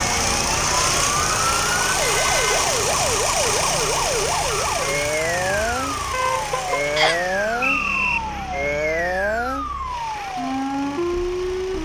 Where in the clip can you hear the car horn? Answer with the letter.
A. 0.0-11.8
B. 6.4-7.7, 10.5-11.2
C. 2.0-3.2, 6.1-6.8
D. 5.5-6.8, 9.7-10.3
C.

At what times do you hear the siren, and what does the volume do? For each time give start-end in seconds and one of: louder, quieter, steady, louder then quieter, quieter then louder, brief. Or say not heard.
0.0-11.8 steady.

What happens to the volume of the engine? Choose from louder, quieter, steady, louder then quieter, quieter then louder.
quieter.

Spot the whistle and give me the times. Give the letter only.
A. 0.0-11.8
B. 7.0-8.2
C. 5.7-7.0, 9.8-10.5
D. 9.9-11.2
B.